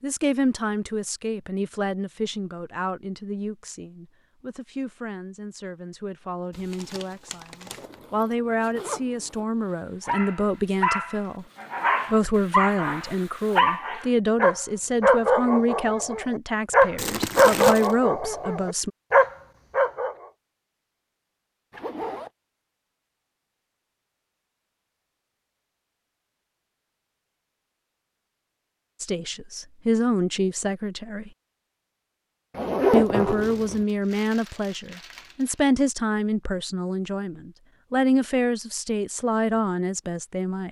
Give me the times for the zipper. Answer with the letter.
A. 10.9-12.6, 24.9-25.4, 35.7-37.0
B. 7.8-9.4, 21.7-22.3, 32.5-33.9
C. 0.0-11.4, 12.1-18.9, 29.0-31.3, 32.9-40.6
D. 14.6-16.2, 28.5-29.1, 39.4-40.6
B.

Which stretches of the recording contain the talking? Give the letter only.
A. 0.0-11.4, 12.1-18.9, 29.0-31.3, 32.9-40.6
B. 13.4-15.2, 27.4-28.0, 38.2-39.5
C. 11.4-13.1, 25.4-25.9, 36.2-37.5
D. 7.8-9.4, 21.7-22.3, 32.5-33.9
A.